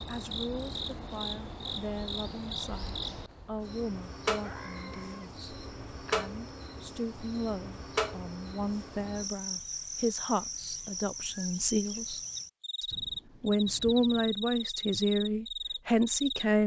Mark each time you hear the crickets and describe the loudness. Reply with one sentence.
You can hear the crickets from 0.0 to 16.4 s, at a steady volume.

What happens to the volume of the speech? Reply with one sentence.
The volume of the speech goes up.